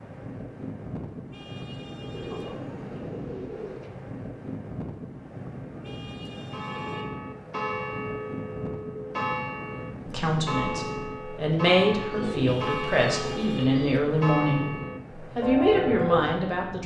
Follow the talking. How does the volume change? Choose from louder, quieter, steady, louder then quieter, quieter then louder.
louder.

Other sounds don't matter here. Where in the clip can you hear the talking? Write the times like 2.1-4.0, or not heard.
10.1-16.8.